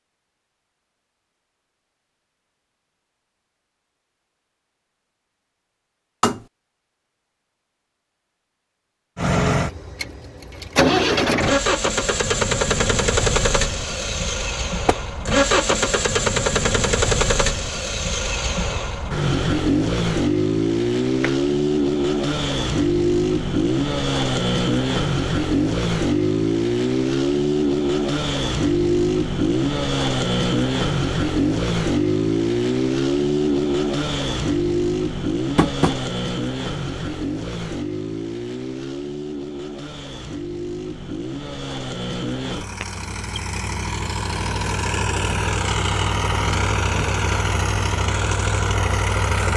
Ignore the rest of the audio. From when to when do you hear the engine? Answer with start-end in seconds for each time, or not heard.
9.2-49.5.